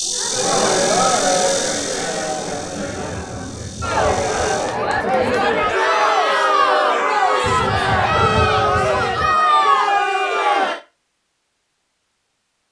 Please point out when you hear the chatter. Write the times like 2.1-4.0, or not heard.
0.0-10.8.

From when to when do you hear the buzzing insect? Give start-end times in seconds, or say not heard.
0.0-4.8.